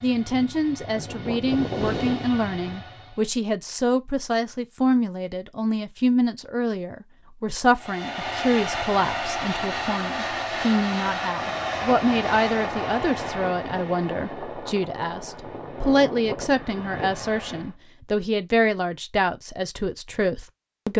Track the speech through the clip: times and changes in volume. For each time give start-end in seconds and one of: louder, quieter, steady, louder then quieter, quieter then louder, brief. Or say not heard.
0.0-20.9 steady.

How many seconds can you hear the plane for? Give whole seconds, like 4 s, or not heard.
13 s.